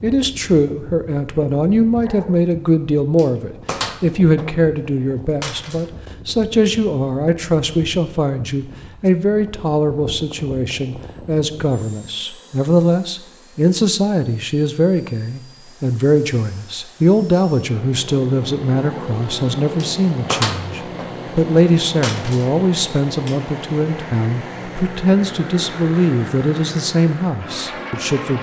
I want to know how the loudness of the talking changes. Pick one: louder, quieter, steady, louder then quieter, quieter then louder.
steady.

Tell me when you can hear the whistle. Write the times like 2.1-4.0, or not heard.
not heard.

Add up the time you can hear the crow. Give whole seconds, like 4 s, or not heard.
not heard.